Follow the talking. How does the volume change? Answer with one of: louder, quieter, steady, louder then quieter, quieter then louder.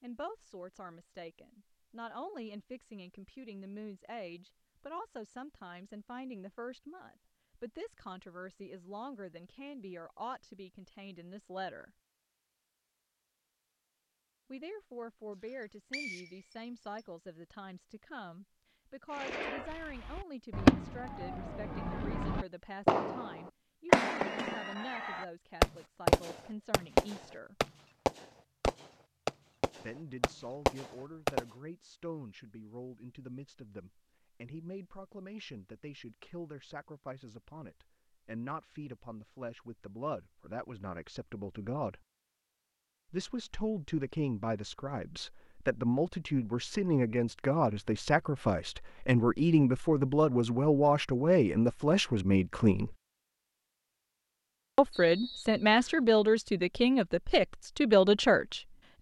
louder.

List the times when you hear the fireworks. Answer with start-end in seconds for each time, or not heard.
19.1-31.4.